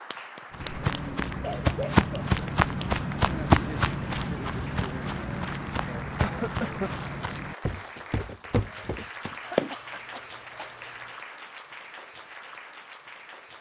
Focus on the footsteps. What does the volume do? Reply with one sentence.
The volume of the footsteps goes down.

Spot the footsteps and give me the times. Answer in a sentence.
The footsteps can be heard from 0.5 to 9.7 s.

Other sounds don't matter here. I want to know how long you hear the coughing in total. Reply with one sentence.
The coughing can be heard for 3 seconds in total.